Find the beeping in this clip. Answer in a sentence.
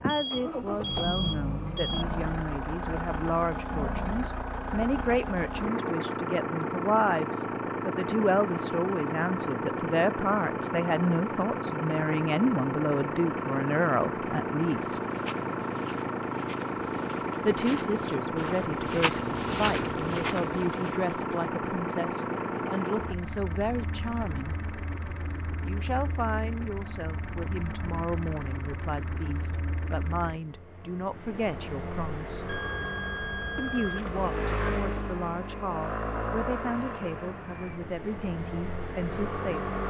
You can hear the beeping from 0.1 to 2.0 s and from 32.5 to 34.4 s.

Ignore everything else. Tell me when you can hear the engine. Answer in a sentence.
You can hear the engine from 0.0 to 39.8 s.